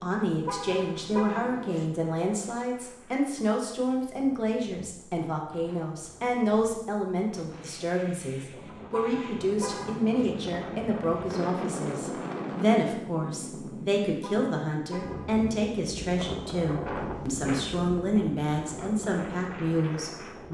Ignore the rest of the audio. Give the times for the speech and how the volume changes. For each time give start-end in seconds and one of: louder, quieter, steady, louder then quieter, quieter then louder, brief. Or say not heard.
0.0-20.4 steady.